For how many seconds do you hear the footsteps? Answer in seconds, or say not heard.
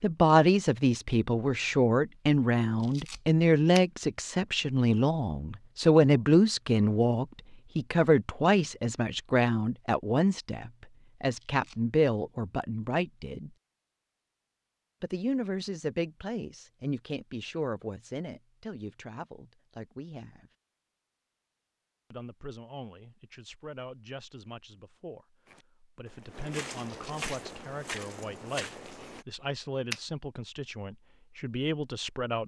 4 s.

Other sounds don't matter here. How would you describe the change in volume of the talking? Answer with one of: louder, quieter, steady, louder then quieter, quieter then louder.
quieter then louder.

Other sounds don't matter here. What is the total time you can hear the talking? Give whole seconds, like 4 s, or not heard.
29 s.